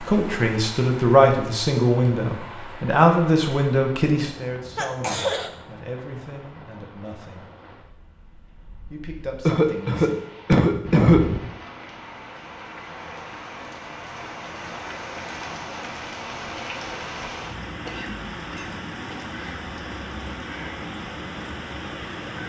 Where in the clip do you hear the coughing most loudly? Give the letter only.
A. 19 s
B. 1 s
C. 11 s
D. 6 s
C.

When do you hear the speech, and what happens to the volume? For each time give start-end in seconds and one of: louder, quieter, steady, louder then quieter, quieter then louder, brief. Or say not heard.
0.0-7.5 quieter
8.9-10.2 brief.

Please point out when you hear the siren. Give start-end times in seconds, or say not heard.
not heard.